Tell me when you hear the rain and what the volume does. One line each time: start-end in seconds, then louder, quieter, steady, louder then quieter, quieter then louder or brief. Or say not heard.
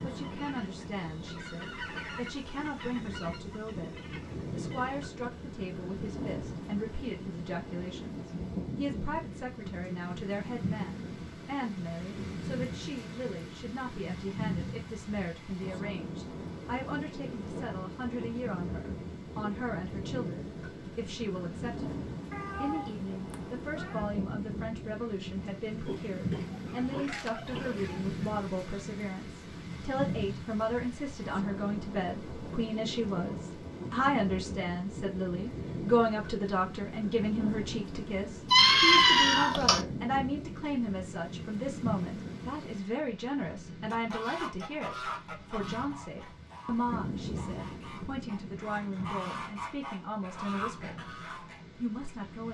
0.0-52.4 steady.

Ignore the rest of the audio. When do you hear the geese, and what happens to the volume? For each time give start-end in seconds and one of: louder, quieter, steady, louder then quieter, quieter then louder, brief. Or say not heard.
0.0-5.0 louder then quieter
43.9-51.6 quieter then louder.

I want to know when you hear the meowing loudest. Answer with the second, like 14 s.
39 s.